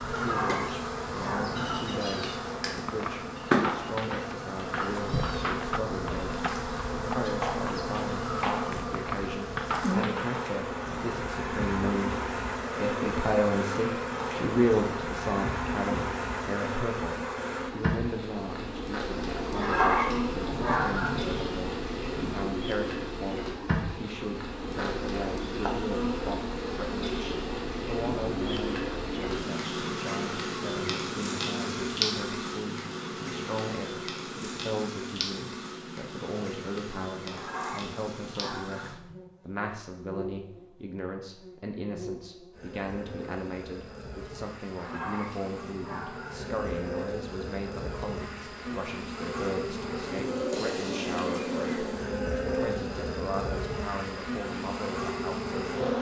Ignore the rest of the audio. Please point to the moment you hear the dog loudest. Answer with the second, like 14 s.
20 s.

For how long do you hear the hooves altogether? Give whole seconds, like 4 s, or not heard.
8 s.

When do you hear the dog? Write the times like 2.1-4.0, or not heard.
0.1-1.8, 19.5-21.4, 37.2-39.1, 44.8-46.5.